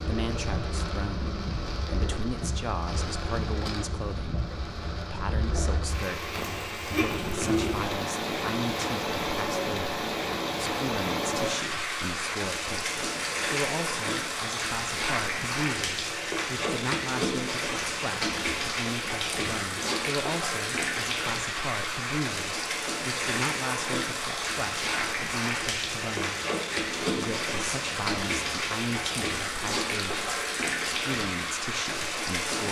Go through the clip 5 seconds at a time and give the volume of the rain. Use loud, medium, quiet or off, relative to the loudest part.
medium, loud, loud, loud, loud, loud, loud.